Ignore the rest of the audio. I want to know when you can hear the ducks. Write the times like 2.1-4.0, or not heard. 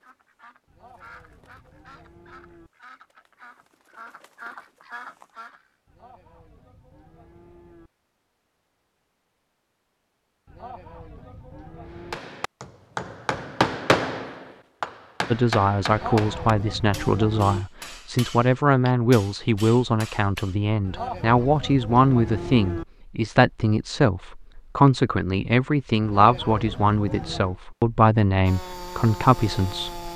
0.0-5.6.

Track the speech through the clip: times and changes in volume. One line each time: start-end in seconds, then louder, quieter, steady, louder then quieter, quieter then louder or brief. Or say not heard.
15.3-30.1 steady.